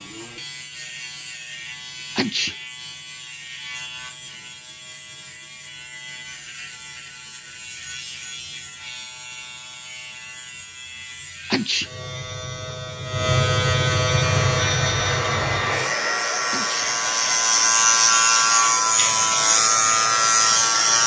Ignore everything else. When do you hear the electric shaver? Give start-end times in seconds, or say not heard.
0.0-21.0.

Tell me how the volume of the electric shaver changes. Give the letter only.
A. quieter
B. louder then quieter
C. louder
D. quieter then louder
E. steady
C.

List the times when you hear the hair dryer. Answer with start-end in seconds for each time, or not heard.
14.2-21.0.